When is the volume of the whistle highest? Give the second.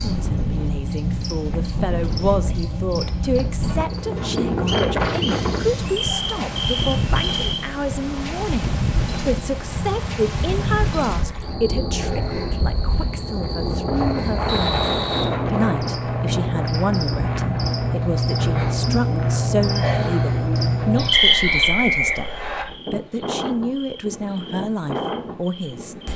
22 s.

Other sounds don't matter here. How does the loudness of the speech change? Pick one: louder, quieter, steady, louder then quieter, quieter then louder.
steady.